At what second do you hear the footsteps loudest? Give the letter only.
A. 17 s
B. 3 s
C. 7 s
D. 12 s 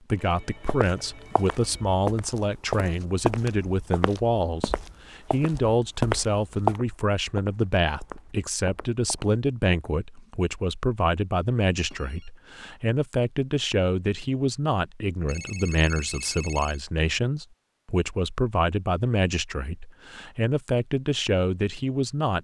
C.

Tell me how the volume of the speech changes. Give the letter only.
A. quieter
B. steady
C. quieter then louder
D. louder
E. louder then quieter
B.